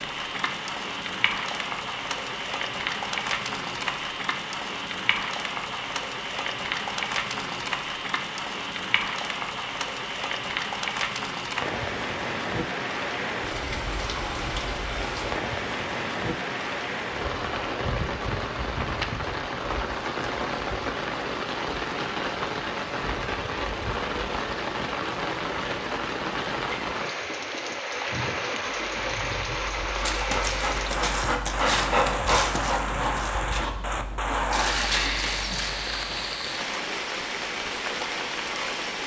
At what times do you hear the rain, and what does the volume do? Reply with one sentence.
The rain can be heard from 0.0 to 39.0 s, at a steady volume.